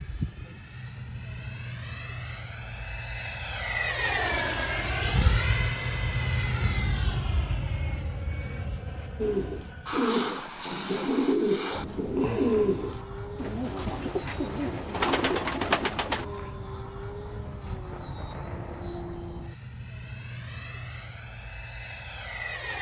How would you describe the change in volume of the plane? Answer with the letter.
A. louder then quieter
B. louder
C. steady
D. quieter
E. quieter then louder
D.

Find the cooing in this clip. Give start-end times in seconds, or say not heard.
9.2-16.2.